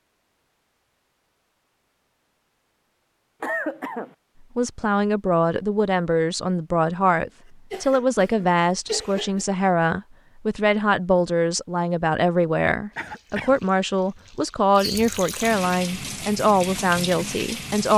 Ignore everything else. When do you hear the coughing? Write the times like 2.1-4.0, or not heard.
3.4-4.2, 7.7-9.4, 12.9-13.6.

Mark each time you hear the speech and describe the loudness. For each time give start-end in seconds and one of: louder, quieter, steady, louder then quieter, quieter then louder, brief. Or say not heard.
4.5-17.9 steady.